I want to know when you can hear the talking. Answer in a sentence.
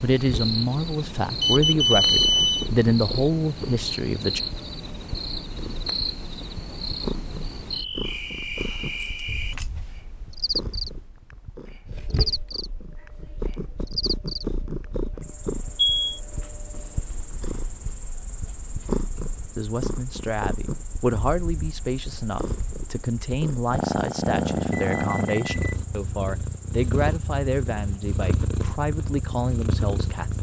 The talking can be heard from 0.0 to 4.4 s and from 19.6 to 30.3 s.